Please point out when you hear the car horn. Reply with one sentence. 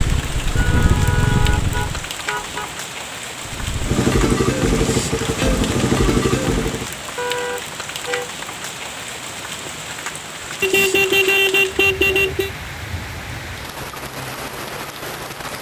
You can hear the car horn from 0.5 to 2.8 s, from 7.2 to 8.3 s and from 10.6 to 12.5 s.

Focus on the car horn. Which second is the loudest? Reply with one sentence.
The loudest moment of the car horn is at 11 seconds.